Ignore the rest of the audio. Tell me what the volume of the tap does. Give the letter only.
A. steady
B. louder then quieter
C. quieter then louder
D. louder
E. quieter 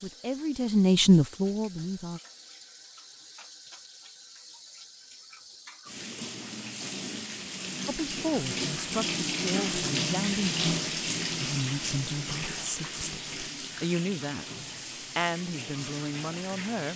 B.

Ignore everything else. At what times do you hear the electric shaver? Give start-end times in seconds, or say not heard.
not heard.